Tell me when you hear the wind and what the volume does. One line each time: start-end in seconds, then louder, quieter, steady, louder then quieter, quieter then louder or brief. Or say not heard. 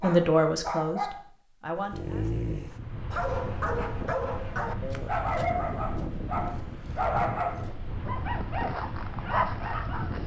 2.5-10.2 steady.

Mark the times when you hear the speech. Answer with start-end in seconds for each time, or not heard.
0.0-2.2.